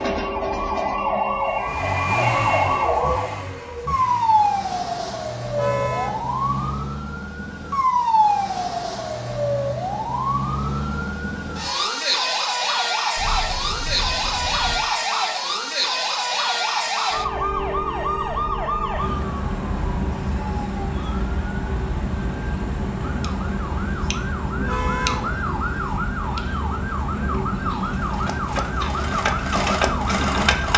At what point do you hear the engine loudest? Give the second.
30 s.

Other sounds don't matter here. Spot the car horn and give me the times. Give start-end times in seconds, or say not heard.
5.5-6.2, 13.2-14.8, 24.6-25.3.